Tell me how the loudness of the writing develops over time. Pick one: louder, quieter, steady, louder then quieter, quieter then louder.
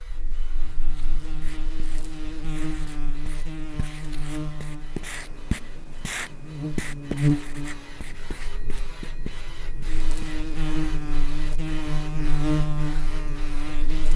louder then quieter.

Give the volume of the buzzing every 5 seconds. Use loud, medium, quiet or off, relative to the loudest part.
medium, loud, loud.